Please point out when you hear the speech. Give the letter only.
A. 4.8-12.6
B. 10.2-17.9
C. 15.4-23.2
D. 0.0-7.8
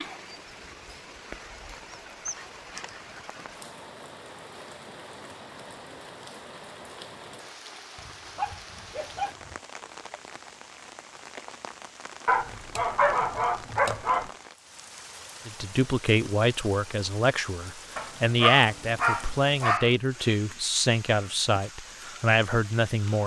C.